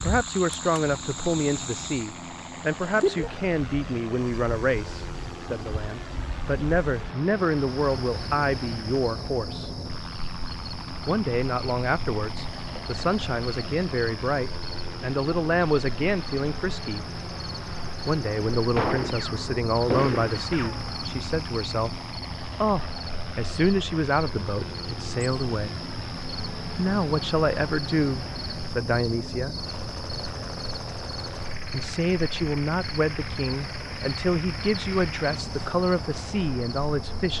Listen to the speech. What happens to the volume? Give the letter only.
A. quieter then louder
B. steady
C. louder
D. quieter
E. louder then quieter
B.